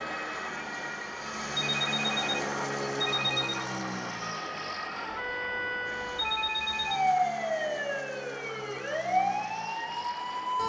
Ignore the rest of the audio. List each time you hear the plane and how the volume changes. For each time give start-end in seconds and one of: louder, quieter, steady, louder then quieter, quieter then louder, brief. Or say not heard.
0.0-10.6 quieter.